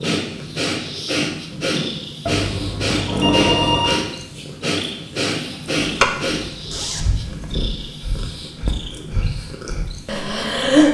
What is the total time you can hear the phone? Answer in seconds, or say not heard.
2 s.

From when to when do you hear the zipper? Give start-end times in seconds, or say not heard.
5.8-7.6.